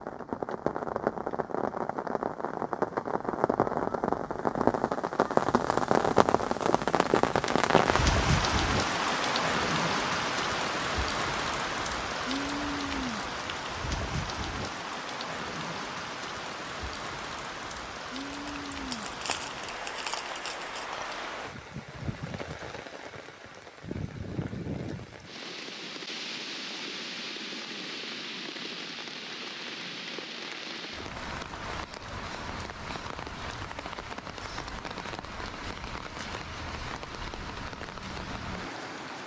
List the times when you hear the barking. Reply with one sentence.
The barking can't be heard in this clip.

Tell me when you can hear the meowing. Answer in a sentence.
The meowing can't be heard in this clip.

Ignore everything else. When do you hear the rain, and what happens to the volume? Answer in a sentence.
The rain can be heard from 0.0 to 39.2 s, getting quieter.